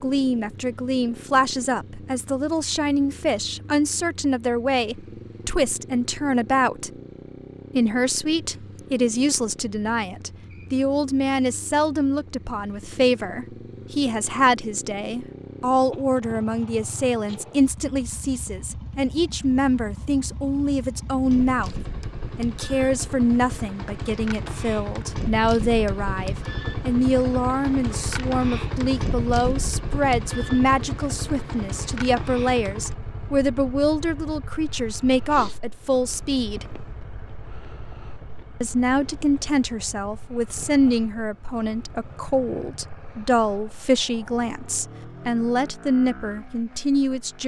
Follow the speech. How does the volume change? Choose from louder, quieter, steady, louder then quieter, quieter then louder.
steady.